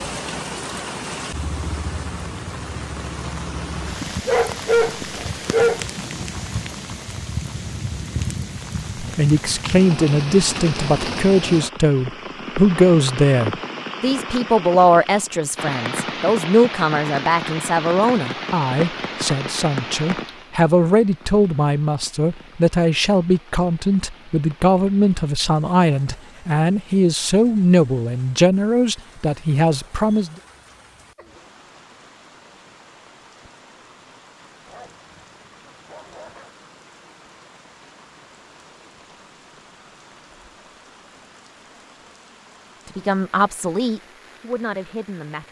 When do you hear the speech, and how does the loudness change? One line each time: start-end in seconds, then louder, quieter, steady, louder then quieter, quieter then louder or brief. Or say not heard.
8.9-30.4 steady
42.9-45.4 brief.